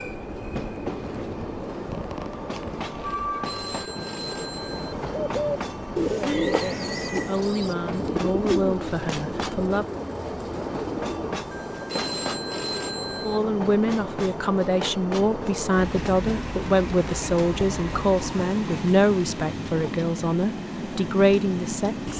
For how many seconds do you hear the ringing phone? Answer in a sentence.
The ringing phone can be heard for 4 seconds in total.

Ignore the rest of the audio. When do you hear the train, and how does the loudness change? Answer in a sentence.
You can hear the train from 0.0 to 22.1 s, at a steady volume.